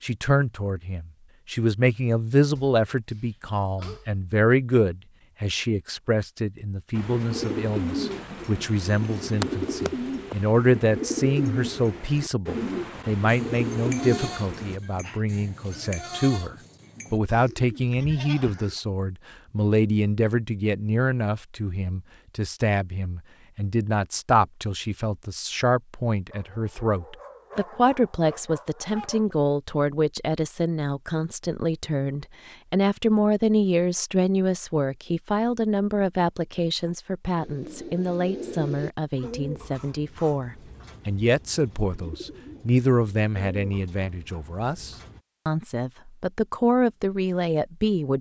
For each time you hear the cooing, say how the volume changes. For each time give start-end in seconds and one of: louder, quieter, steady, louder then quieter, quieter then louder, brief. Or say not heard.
6.9-14.8 steady
37.4-45.2 quieter then louder.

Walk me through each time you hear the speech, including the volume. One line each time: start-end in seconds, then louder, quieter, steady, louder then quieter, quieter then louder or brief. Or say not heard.
0.0-48.1 steady.